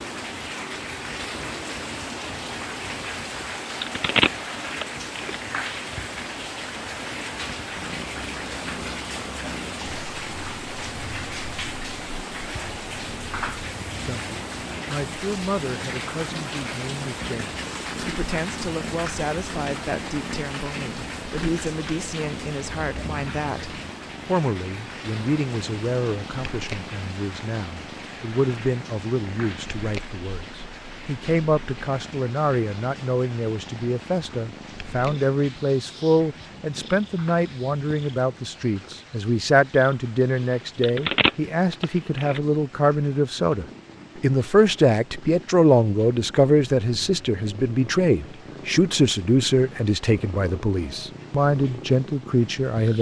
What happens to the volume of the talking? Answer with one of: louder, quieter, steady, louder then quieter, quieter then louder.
louder.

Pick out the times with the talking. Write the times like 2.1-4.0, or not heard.
14.0-52.9.